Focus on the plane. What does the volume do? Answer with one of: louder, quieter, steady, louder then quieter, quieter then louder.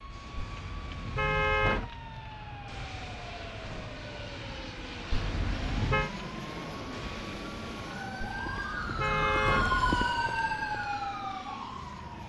louder then quieter.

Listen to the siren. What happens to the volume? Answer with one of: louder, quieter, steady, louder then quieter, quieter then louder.
louder.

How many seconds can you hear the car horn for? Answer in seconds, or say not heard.
4 s.